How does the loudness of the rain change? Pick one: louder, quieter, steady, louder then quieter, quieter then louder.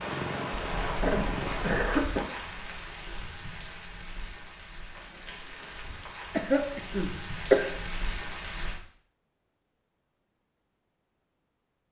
quieter then louder.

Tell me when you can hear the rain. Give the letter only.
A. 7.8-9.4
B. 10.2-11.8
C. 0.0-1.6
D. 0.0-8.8
D.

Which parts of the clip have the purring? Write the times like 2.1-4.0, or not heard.
0.0-1.6.